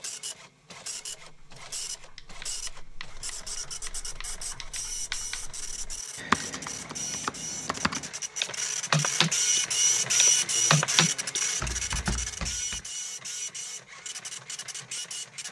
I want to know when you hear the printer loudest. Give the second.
10 s.